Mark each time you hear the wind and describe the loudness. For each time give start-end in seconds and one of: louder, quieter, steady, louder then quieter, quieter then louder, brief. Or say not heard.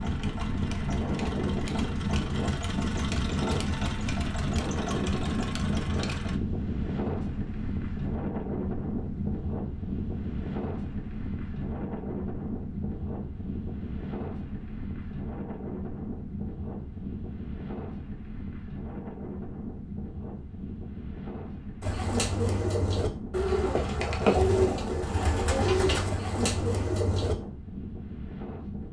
0.0-28.8 quieter.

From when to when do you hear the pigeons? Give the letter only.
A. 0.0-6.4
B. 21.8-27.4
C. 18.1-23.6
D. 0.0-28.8
B.